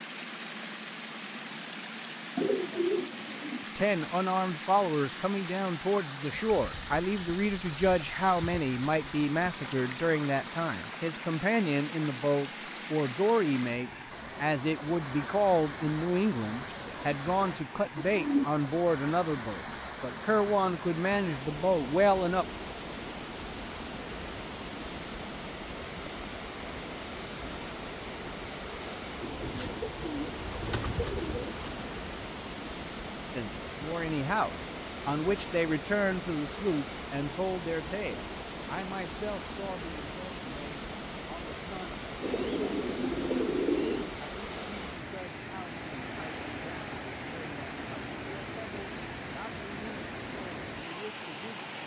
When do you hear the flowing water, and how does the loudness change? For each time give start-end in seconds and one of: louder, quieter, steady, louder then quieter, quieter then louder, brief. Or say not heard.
0.0-51.8 steady.